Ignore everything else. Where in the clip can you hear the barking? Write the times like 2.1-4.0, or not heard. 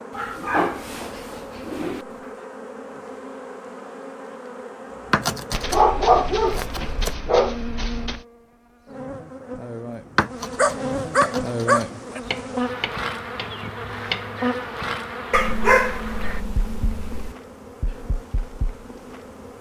0.1-2.0, 5.5-8.2, 10.6-12.2, 15.3-17.4.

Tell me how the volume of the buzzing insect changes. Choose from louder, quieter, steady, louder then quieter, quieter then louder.
louder then quieter.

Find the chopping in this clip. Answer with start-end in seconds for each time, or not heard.
5.1-7.2, 10.2-14.4.